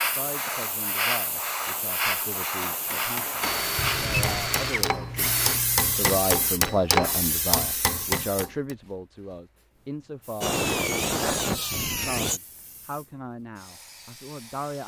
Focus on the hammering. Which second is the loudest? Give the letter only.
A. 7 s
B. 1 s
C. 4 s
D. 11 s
A.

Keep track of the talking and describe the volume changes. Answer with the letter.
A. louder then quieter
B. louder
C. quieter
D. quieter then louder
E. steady
A.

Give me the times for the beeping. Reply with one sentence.
The beeping can be heard from 3.8 to 4.5 s.